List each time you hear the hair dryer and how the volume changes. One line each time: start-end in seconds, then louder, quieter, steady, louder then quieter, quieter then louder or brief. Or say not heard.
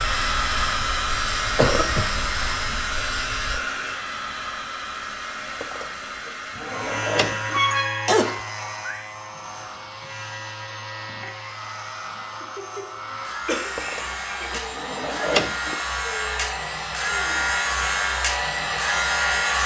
0.0-19.6 quieter then louder.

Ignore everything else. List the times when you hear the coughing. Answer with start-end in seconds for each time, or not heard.
1.6-2.6, 7.5-8.4, 13.4-14.6.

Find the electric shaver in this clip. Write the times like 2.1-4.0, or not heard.
0.0-3.6, 6.7-19.6.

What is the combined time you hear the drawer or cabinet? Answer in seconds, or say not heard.
4 s.